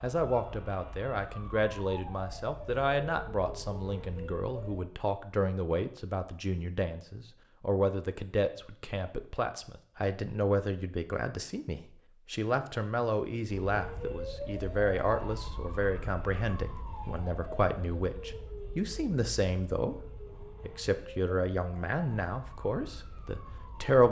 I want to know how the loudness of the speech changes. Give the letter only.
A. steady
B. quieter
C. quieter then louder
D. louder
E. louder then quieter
A.